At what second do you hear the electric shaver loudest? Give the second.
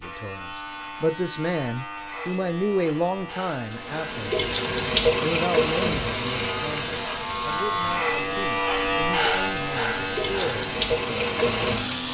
9 s.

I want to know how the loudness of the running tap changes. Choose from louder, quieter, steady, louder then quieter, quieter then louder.
quieter then louder.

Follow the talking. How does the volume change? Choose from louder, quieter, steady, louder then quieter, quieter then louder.
quieter.